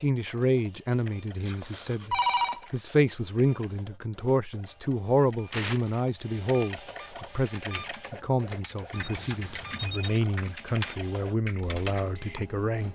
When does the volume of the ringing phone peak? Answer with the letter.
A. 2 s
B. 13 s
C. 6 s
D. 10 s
A.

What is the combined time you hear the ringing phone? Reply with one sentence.
You can hear the ringing phone for 2 seconds altogether.